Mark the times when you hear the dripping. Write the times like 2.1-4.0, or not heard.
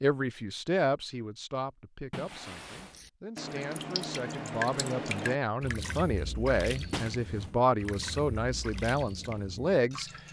2.7-10.2.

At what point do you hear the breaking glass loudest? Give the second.
7 s.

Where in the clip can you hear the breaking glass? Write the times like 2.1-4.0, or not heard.
2.1-3.0, 6.9-7.5.